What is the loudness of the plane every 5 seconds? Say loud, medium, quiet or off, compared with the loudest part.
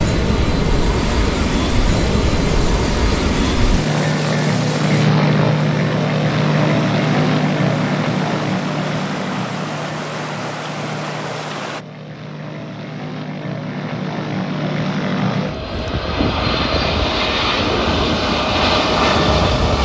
loud, loud, medium, loud.